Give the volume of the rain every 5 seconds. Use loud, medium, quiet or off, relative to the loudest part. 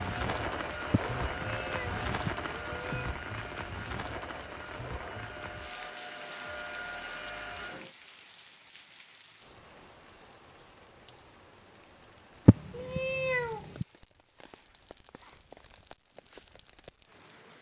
loud, medium, quiet, quiet.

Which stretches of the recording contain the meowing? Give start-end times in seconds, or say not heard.
0.9-3.2, 12.4-13.8.